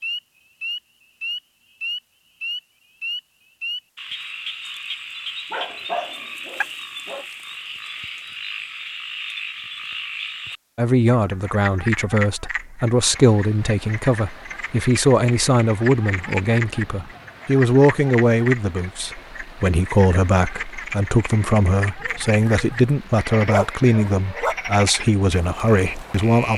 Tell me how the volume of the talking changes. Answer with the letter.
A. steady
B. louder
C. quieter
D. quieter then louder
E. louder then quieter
A.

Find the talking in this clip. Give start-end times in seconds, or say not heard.
10.8-26.5.